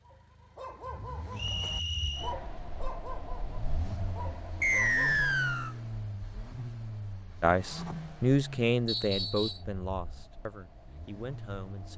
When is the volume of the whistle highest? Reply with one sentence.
The loudest moment of the whistle is at 5 seconds.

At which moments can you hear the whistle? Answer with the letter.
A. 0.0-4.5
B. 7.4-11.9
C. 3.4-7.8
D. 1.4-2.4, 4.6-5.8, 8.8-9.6
D.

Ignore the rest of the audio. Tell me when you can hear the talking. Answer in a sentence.
The talking can be heard from 7.4 to 11.9 s.